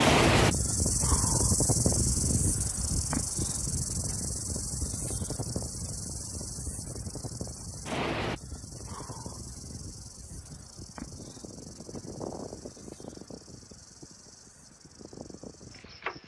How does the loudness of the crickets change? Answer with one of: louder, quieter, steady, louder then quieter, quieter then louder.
quieter.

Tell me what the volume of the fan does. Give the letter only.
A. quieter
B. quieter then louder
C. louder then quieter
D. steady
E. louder
A.